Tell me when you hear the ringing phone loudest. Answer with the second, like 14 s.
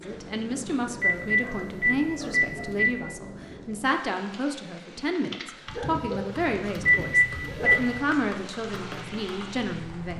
7 s.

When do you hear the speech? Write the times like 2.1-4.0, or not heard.
0.0-10.1.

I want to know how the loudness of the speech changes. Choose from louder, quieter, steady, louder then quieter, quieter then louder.
steady.